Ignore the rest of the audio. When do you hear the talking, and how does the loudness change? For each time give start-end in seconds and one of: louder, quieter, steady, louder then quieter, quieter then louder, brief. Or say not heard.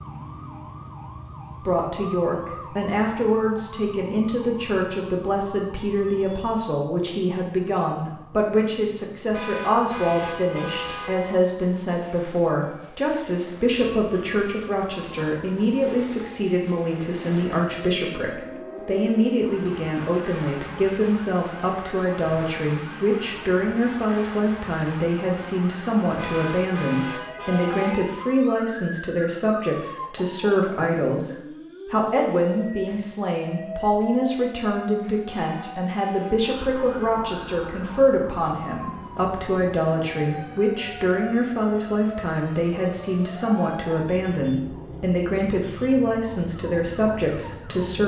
1.6-48.0 steady.